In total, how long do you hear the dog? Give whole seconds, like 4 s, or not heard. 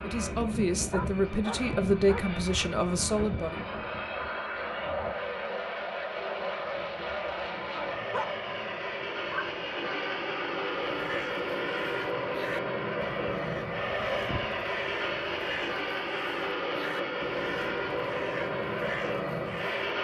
4 s.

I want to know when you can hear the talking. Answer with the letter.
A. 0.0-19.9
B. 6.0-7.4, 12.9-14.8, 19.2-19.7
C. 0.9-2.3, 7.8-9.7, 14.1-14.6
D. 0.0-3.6
D.